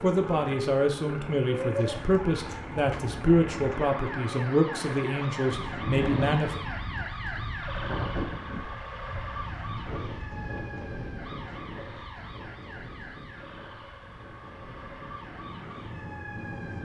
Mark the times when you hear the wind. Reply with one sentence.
You can hear the wind from 5.5 to 16.8 s.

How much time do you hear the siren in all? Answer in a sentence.
You can hear the siren for 17 seconds altogether.